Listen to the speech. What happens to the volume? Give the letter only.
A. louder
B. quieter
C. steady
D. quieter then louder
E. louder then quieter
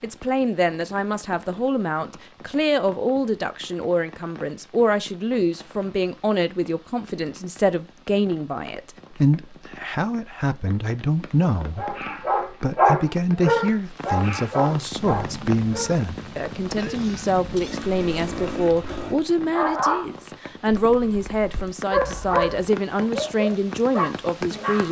C.